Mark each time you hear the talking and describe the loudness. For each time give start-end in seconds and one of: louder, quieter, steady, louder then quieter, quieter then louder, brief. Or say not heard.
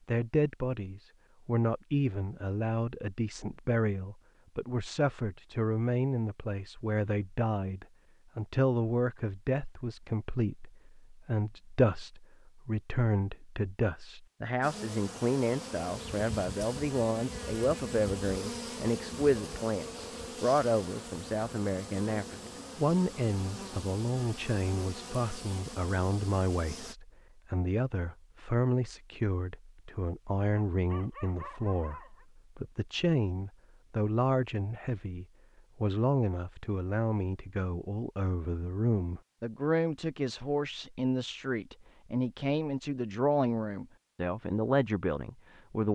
0.1-45.8 steady.